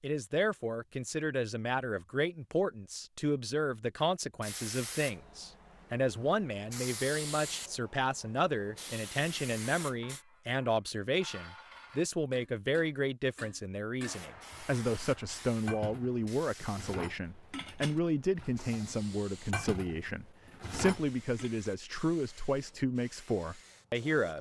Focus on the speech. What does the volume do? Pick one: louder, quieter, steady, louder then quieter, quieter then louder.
steady.